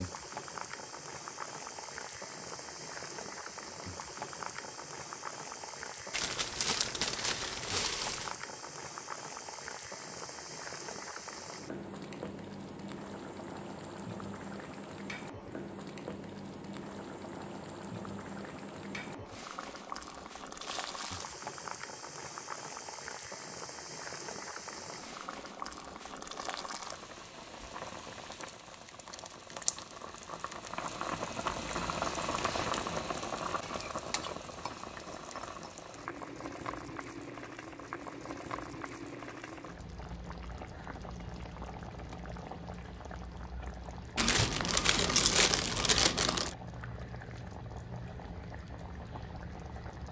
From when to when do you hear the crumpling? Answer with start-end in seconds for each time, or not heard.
6.1-8.3, 20.6-21.4, 44.1-46.5.